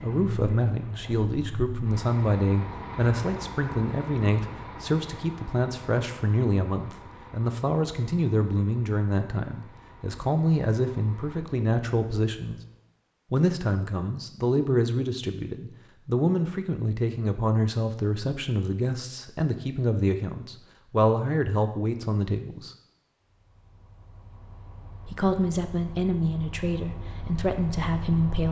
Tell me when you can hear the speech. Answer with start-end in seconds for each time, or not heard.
0.0-12.6, 13.3-22.7, 25.1-28.4.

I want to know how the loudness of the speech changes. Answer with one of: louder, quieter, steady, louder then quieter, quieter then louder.
steady.